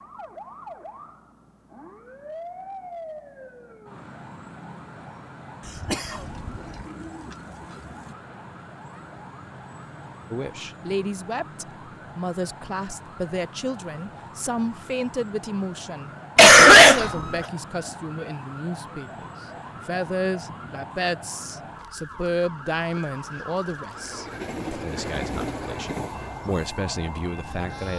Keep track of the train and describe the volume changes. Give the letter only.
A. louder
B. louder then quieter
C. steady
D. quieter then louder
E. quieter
E.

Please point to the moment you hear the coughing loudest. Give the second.
17 s.